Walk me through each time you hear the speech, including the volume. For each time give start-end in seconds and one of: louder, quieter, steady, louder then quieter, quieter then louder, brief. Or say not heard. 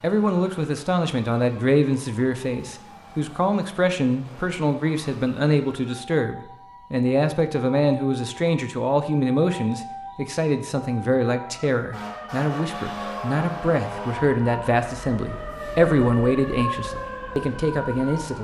0.0-18.3 steady.